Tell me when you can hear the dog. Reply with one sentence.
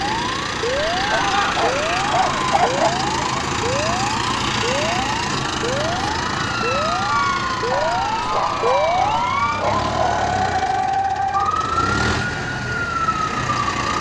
The dog can be heard from 1.1 to 2.9 s and from 7.7 to 10.3 s.